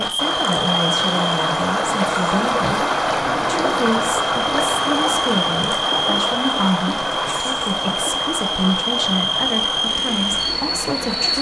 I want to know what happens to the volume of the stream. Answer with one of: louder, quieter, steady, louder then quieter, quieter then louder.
quieter.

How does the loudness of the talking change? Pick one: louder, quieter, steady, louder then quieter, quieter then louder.
steady.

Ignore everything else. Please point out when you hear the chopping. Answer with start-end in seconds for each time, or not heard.
not heard.